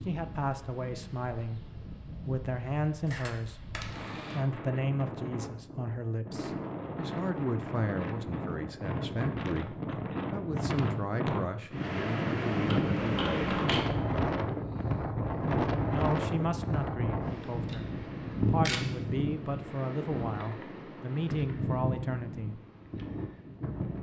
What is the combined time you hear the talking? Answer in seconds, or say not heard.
20 s.